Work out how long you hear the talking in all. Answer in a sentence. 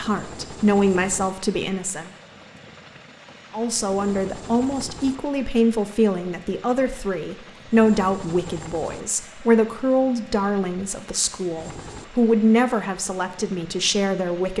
You can hear the talking for 13 seconds altogether.